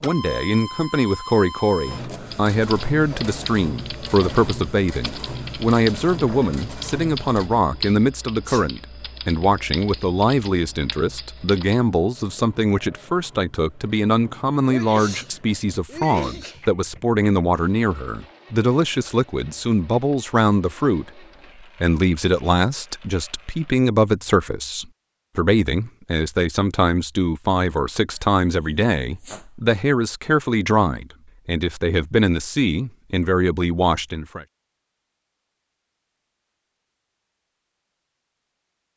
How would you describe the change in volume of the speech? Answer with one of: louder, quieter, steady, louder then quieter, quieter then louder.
steady.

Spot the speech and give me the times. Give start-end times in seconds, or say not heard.
0.0-34.5.